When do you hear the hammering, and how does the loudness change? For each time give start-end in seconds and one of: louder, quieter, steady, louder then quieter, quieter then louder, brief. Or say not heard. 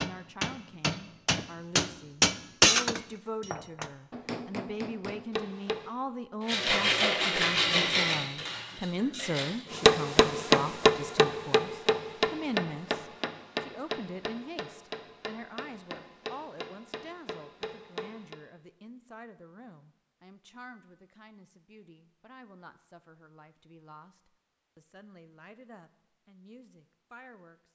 0.0-5.9 louder then quieter
9.7-18.4 quieter.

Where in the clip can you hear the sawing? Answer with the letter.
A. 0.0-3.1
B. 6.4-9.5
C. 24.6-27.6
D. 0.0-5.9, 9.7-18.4
B.